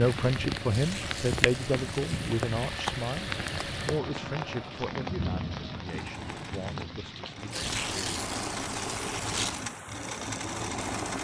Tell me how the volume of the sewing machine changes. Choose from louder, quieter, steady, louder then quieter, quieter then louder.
louder.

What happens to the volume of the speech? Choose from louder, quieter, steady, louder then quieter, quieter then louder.
quieter.